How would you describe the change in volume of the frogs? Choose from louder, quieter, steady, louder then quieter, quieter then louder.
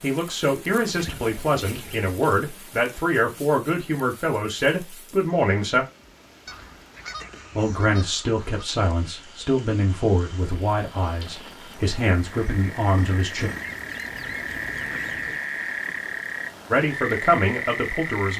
louder.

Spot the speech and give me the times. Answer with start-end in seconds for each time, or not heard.
0.0-5.8, 7.5-13.5, 16.7-18.3.